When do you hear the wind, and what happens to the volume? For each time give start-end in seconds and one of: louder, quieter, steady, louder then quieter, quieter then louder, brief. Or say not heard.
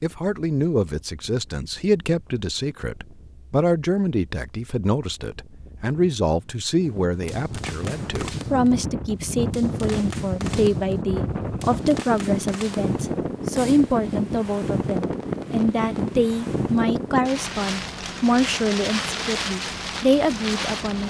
0.0-21.0 louder.